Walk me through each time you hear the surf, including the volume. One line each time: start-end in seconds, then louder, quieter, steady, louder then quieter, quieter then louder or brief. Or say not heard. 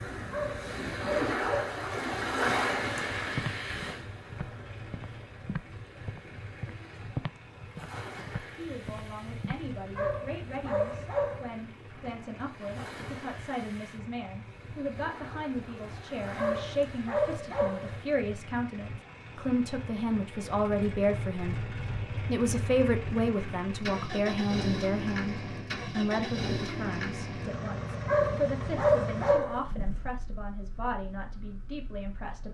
0.0-18.2 quieter.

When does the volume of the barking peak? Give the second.
29 s.